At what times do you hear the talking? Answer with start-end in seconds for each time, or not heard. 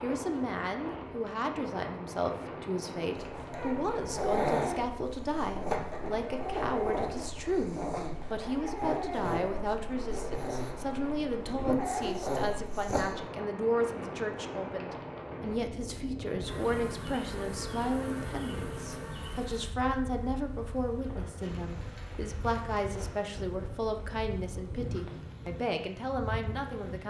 0.0-27.0.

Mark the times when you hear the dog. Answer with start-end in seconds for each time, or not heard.
3.1-13.2.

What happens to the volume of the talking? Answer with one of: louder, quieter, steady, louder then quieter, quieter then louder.
steady.